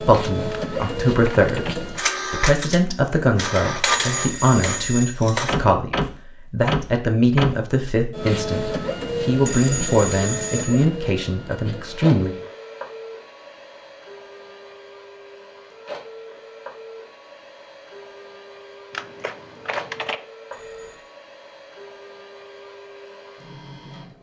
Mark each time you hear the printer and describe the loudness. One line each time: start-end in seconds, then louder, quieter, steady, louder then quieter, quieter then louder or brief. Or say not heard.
0.0-24.1 quieter.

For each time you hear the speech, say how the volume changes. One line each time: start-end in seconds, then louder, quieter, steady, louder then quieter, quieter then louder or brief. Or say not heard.
0.0-12.3 steady.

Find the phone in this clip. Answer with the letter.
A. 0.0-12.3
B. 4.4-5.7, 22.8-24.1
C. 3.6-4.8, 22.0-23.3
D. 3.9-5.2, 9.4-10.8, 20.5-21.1
D.